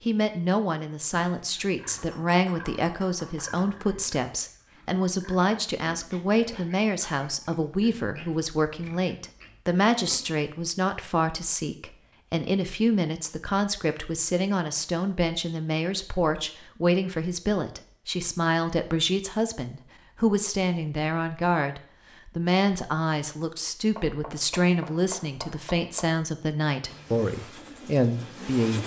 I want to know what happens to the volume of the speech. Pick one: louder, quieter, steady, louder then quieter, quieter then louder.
steady.